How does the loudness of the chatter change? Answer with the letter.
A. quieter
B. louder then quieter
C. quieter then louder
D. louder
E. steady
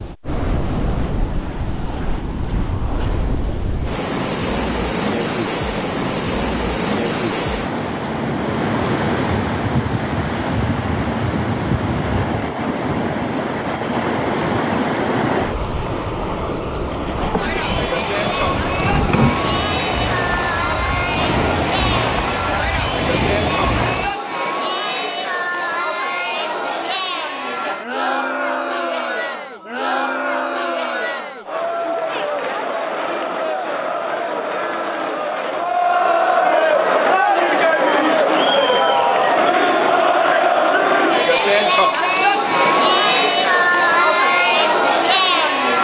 D.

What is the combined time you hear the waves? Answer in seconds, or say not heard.
24 s.